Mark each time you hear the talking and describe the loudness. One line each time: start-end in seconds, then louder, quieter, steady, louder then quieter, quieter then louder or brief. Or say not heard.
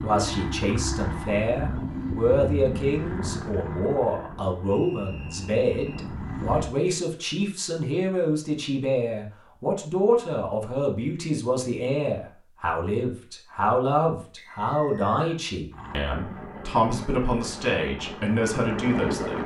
0.0-19.4 steady.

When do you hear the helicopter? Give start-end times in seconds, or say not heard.
0.0-6.8, 15.7-19.4.